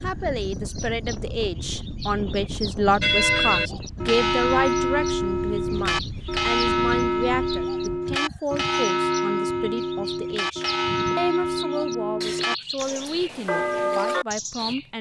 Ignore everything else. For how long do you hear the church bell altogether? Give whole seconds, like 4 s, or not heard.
12 s.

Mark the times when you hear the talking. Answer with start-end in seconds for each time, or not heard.
0.0-14.9.